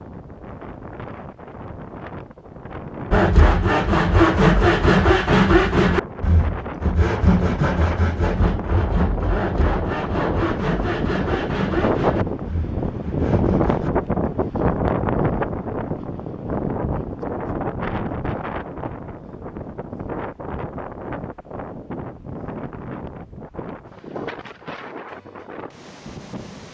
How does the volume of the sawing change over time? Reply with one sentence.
The volume of the sawing goes down.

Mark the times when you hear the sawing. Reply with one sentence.
The sawing can be heard from 3.1 to 13.9 s.